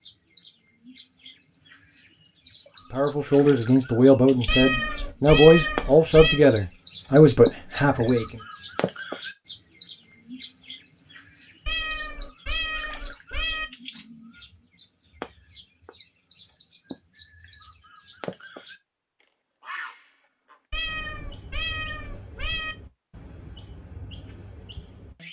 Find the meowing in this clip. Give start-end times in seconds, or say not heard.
4.5-6.4, 11.7-13.7, 20.7-22.8.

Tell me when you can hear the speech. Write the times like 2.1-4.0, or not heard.
2.9-8.4.